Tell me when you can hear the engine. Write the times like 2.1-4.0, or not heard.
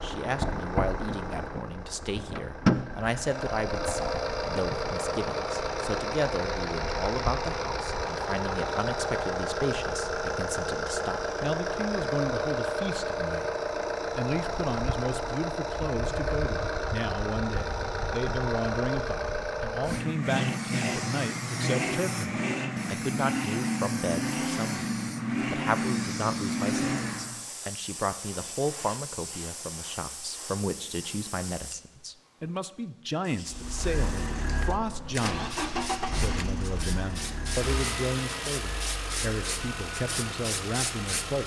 0.0-27.4, 33.5-41.4.